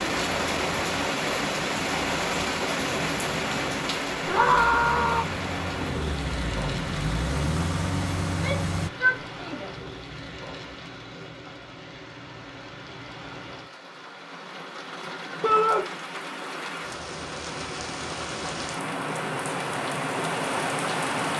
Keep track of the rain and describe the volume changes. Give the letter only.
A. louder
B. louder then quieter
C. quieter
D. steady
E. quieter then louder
E.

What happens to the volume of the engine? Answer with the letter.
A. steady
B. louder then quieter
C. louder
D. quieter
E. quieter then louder
C.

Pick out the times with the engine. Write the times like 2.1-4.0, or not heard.
3.0-8.9.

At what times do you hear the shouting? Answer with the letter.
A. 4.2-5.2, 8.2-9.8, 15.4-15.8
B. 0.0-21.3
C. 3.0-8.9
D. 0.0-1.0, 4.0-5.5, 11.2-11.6
A.